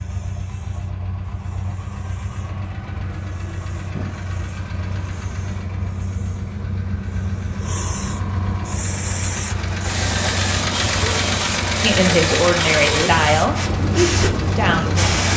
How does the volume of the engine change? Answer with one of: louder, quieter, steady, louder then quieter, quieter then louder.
louder.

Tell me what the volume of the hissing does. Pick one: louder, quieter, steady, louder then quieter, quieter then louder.
louder.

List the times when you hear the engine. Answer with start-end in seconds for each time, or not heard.
0.0-15.3.